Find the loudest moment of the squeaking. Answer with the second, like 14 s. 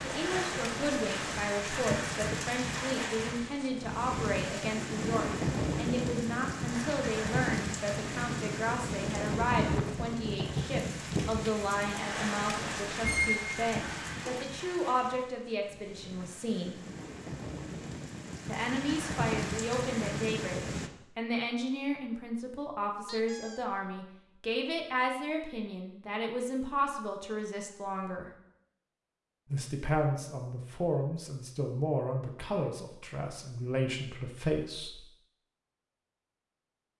13 s.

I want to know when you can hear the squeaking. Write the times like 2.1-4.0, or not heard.
13.0-14.4, 23.1-23.6.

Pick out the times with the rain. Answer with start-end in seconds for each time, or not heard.
0.0-20.9.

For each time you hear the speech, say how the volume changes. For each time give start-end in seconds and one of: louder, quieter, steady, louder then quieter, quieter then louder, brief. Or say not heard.
0.0-16.8 steady
18.4-28.3 steady
29.5-35.0 quieter then louder.